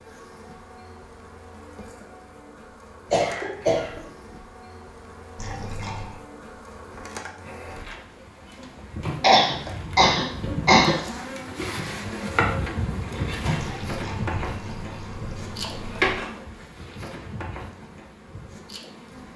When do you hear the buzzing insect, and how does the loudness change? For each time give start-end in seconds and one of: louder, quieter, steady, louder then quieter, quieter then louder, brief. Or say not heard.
0.0-19.3 louder then quieter.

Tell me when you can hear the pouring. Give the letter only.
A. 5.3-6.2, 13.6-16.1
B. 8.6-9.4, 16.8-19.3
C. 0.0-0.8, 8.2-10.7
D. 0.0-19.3
A.